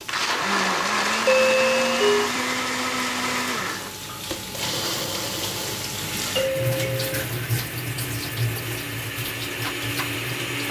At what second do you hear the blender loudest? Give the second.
1 s.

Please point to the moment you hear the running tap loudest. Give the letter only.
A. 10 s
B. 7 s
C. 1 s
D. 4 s
B.